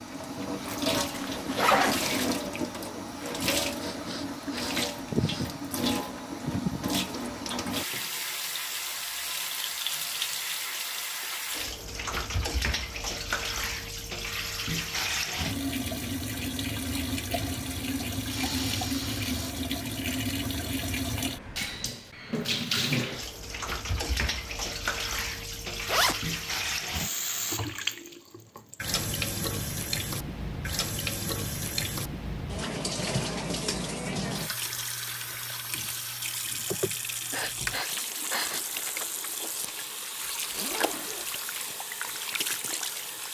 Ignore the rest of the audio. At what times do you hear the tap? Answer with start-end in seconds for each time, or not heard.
0.0-43.3.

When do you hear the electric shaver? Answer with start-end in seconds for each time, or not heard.
not heard.